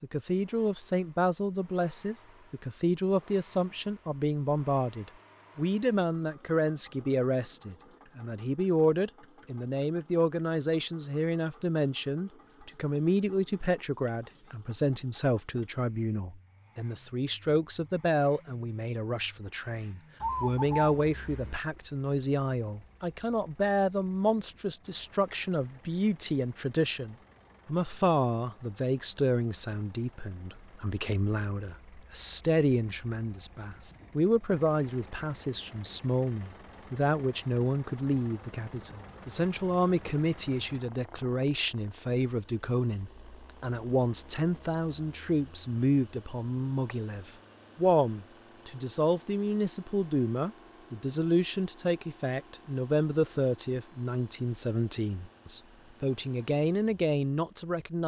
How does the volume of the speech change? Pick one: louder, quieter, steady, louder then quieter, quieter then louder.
steady.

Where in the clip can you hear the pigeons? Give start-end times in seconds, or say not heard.
20.2-21.6.